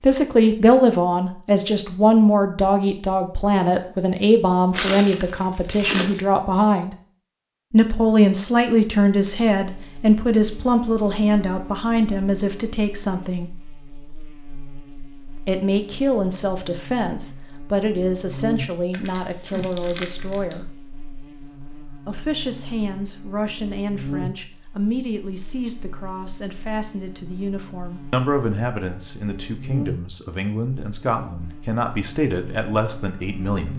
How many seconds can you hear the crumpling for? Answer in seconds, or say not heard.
3 s.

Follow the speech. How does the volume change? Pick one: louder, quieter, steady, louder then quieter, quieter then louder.
quieter.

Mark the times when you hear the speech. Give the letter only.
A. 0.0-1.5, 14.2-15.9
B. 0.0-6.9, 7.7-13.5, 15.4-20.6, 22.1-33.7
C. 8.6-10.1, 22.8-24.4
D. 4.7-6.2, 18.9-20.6
B.